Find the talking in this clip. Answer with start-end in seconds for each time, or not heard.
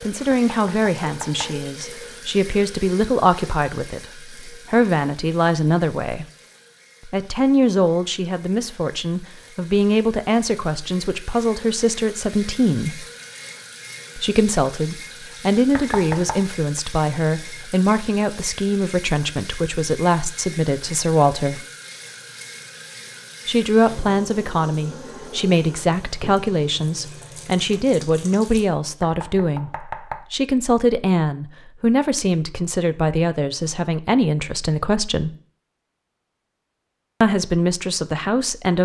0.0-6.2, 7.0-13.1, 14.2-21.6, 23.4-35.4, 37.2-38.8.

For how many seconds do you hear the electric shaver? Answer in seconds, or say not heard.
not heard.